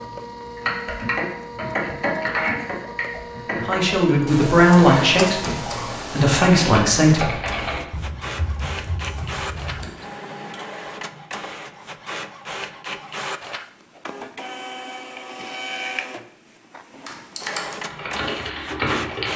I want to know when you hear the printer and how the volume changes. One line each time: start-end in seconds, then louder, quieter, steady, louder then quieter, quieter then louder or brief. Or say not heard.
0.0-19.3 steady.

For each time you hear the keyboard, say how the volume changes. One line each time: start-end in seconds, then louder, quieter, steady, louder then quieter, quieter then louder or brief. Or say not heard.
0.6-9.9 quieter
17.1-19.3 brief.